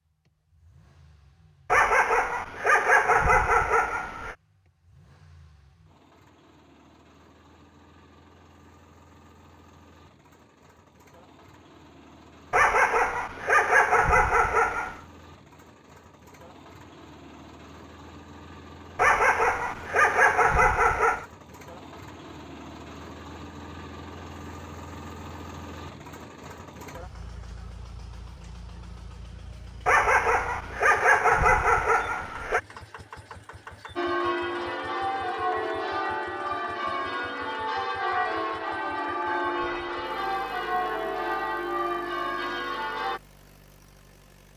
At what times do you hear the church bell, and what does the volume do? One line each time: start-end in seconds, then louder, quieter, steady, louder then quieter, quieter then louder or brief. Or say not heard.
34.0-43.2 steady.